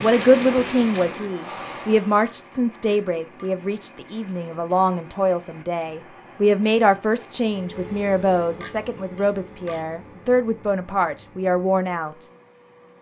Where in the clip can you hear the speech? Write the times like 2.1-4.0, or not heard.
0.0-12.2.